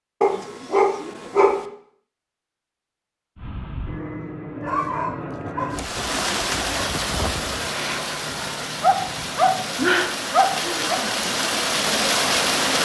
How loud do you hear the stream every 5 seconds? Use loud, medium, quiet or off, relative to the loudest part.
off, medium, loud.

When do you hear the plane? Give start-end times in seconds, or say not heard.
3.4-12.8.